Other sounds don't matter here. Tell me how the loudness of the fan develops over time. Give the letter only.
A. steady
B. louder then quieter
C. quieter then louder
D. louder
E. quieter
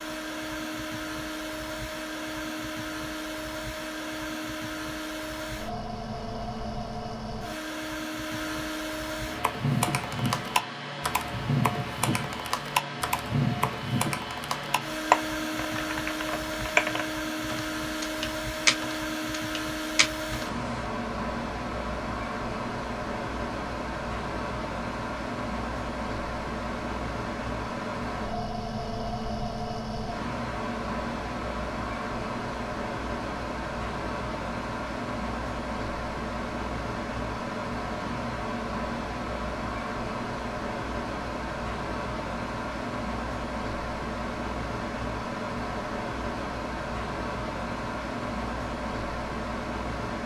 A.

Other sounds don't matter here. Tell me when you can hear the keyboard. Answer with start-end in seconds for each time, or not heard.
9.3-20.7.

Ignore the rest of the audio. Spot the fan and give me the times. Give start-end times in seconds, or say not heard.
0.0-50.2.